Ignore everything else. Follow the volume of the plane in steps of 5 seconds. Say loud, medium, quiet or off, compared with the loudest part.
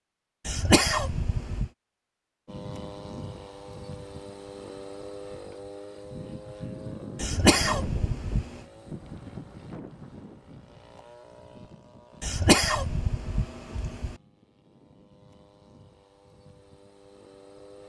loud, loud, medium, quiet.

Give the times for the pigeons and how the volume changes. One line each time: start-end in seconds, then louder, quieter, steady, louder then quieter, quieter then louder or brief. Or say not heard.
not heard.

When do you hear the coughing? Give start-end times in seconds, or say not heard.
0.5-1.7, 7.2-8.6, 12.2-14.2.